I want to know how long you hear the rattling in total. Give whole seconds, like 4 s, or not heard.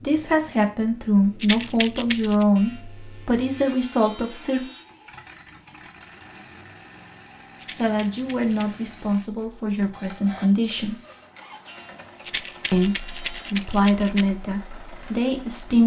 4 s.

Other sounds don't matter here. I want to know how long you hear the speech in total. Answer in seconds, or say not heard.
11 s.